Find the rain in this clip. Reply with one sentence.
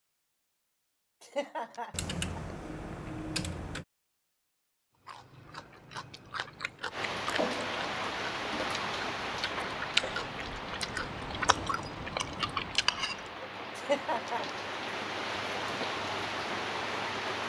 The rain can be heard from 6.9 to 17.4 s.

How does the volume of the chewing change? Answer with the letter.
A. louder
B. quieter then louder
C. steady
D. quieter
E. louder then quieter
A.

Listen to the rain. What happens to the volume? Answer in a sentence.
The volume of the rain goes down, then up.